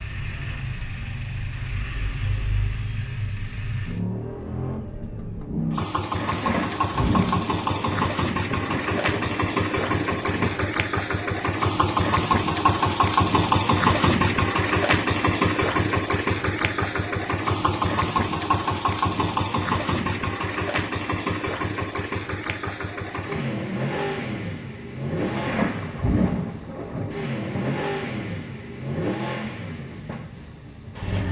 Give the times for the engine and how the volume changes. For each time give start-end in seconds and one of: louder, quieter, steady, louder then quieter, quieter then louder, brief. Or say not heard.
0.0-31.2 louder then quieter.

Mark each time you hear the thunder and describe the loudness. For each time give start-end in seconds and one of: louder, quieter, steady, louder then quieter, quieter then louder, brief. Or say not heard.
6.1-10.7 quieter
25.1-27.8 brief.